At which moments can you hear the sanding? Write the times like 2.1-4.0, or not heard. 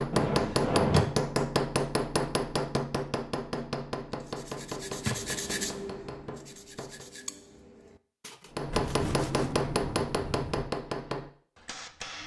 4.1-9.6.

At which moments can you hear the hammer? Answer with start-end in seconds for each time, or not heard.
0.0-7.1, 8.5-12.2.